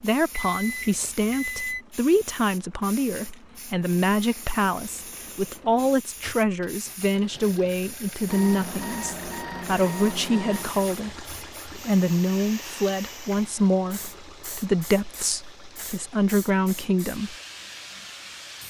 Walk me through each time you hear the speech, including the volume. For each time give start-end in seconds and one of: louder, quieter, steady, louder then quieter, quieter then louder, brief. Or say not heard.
0.0-17.4 steady.